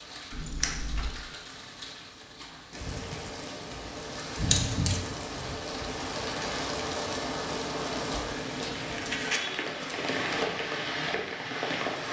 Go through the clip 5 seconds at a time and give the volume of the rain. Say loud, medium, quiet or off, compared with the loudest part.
medium, loud, loud.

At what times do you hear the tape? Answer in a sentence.
You can't hear the tape here.